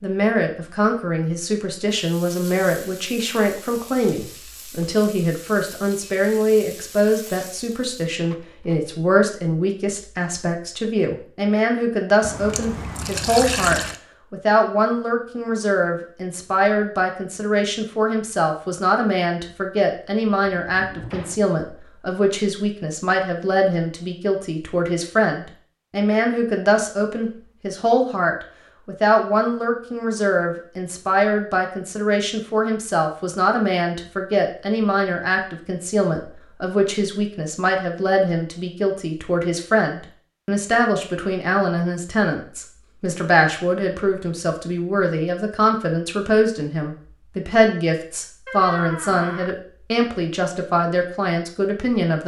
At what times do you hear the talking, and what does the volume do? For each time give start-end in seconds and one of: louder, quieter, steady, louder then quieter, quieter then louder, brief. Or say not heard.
0.0-52.2 steady.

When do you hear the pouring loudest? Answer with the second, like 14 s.
14 s.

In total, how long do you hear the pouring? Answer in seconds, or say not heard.
2 s.